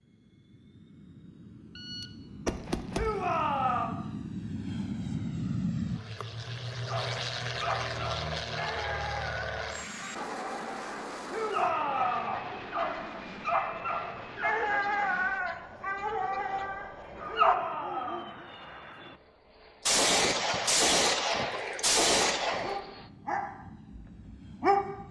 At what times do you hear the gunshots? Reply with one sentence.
You can hear the gunshots from 1.8 to 3.2 s and from 19.9 to 22.8 s.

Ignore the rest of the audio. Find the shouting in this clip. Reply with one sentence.
The shouting can be heard from 2.9 to 4.0 s, from 11.2 to 12.3 s and from 17.2 to 18.3 s.